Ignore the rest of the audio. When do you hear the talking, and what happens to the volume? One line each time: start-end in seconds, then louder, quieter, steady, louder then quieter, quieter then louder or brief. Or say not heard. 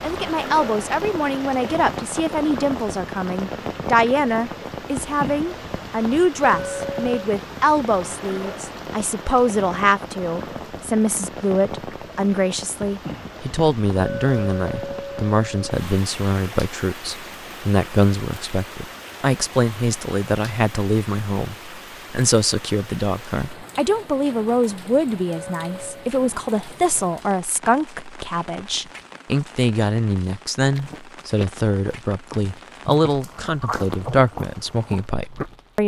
0.0-35.8 steady.